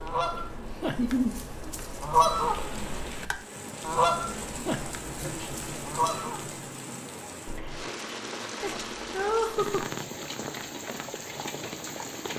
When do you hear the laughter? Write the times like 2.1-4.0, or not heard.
0.8-1.4, 5.0-5.7, 8.6-9.8.